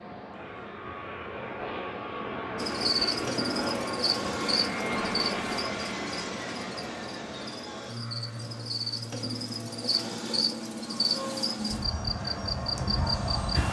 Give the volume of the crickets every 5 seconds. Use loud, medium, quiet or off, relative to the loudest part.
loud, medium, loud.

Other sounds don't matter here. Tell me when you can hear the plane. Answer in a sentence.
You can hear the plane from 0.0 to 13.6 s.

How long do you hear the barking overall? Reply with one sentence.
The barking can't be heard in this clip.